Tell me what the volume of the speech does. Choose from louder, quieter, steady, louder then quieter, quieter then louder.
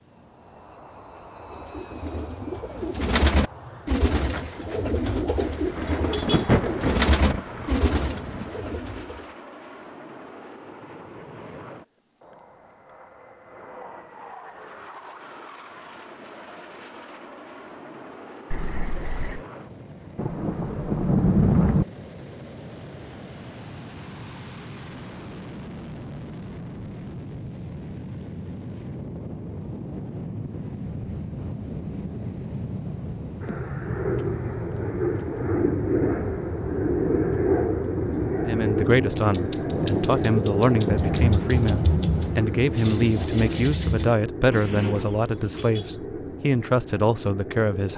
steady.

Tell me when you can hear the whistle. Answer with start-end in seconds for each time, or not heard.
not heard.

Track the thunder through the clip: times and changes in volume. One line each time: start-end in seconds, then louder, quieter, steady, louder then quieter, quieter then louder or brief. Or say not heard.
4.2-8.5 louder then quieter
20.1-21.9 brief
39.7-44.1 louder then quieter.